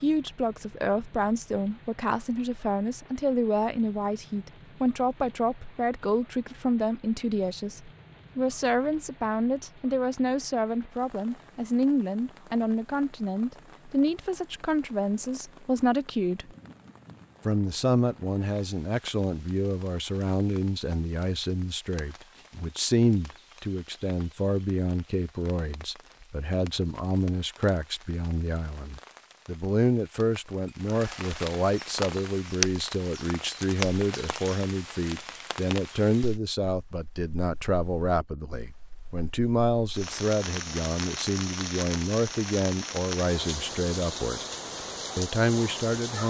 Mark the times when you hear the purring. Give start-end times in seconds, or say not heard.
not heard.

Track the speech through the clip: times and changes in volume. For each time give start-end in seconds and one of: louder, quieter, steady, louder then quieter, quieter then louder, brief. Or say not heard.
0.0-16.5 steady
17.4-44.4 steady
45.1-46.2 brief.